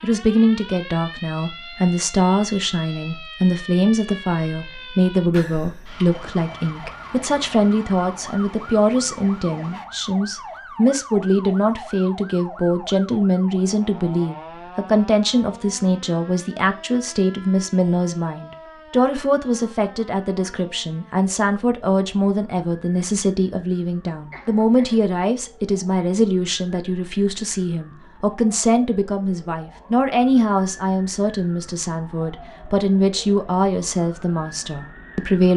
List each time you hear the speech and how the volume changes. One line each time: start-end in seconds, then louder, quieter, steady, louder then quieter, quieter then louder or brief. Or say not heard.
0.0-35.5 steady.